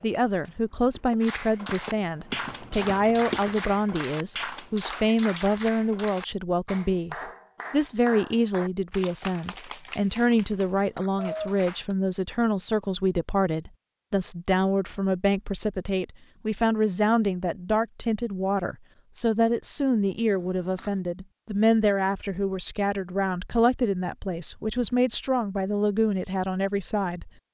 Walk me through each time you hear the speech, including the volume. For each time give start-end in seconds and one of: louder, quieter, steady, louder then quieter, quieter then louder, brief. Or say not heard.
0.0-27.3 steady.